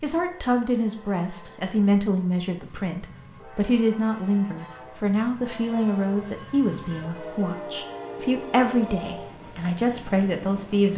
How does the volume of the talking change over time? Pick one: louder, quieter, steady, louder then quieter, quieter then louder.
steady.